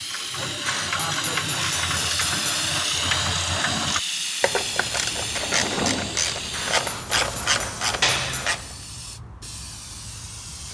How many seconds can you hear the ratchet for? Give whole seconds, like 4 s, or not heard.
9 s.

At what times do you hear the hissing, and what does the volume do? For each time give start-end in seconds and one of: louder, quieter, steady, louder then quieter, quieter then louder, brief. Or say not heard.
0.0-10.6 quieter.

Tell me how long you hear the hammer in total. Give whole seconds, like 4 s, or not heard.
4 s.